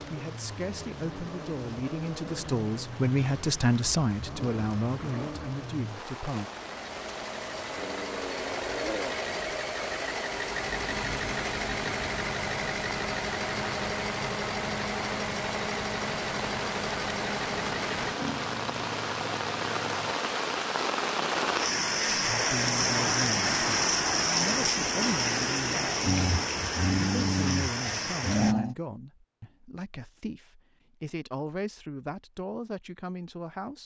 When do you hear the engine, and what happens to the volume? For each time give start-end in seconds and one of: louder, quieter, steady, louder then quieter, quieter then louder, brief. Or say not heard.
0.0-18.2 louder.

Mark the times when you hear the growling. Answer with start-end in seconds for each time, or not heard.
7.8-9.2, 18.1-20.2, 26.1-28.8.